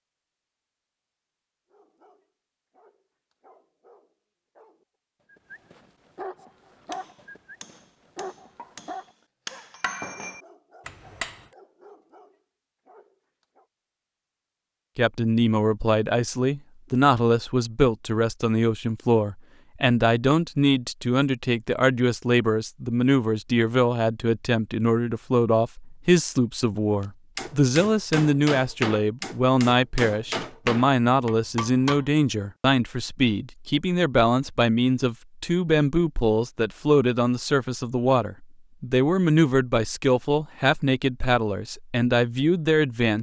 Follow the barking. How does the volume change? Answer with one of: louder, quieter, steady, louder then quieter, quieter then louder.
louder then quieter.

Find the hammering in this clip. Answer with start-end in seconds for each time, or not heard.
6.3-11.5, 27.0-32.0.